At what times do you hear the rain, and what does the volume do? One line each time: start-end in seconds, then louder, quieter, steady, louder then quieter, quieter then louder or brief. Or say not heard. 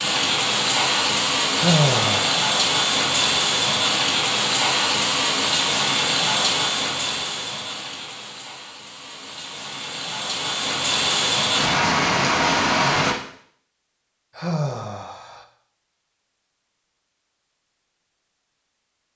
0.0-13.2 quieter then louder.